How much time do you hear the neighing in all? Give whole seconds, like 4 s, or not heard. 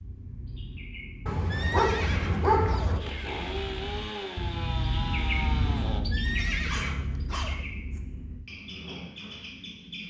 3 s.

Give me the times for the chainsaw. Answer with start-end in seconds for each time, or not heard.
3.0-6.0.